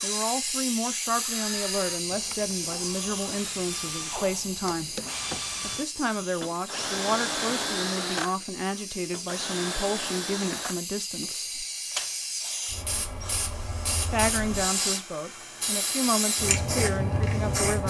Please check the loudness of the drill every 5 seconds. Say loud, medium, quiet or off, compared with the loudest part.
medium, loud, medium, quiet.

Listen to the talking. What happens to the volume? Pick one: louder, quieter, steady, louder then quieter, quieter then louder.
steady.